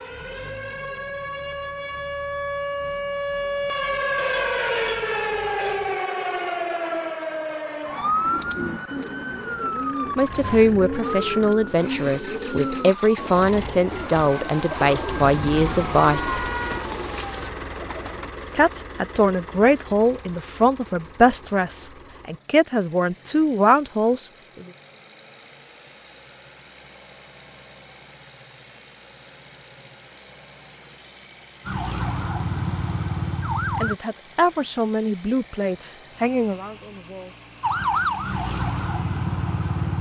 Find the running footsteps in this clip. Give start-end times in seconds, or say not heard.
not heard.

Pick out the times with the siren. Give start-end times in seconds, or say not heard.
0.0-17.5, 31.6-34.0, 37.6-39.9.